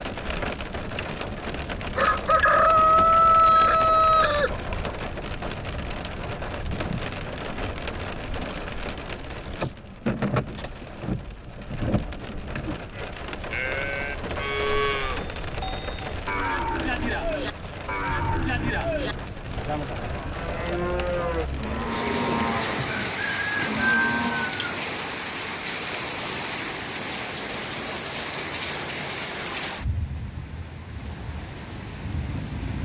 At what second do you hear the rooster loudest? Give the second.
3 s.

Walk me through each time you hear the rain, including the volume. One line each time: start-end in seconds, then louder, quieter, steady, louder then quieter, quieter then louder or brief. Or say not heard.
0.0-32.7 steady.